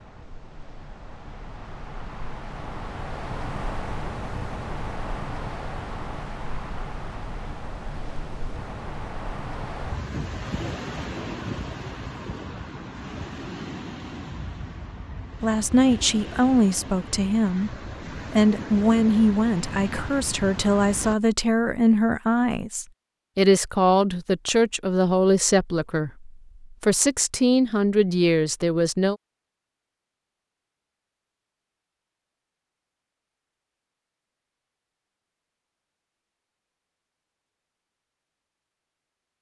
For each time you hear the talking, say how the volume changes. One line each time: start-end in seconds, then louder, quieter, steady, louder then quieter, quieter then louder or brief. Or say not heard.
15.4-29.1 steady.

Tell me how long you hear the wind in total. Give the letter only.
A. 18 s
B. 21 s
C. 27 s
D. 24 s
B.